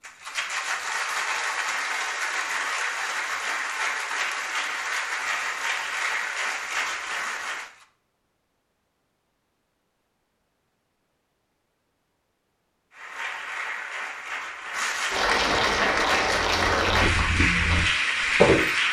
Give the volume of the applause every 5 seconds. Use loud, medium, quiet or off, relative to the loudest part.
medium, medium, medium, loud.